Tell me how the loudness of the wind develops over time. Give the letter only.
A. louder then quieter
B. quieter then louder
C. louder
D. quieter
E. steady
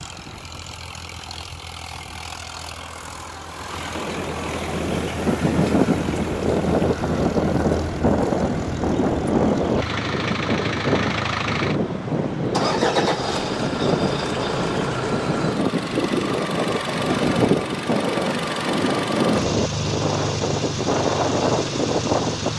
E.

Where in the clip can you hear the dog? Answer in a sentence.
You can't hear the dog here.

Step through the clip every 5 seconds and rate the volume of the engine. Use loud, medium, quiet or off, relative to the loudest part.
medium, medium, loud, loud, loud.